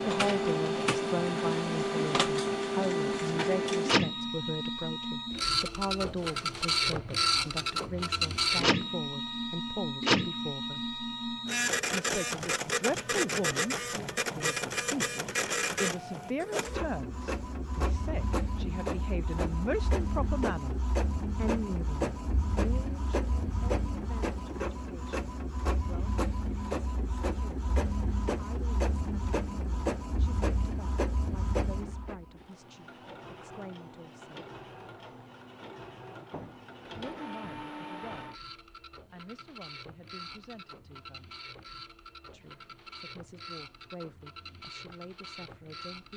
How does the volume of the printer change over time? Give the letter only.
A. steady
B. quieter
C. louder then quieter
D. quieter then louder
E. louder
B.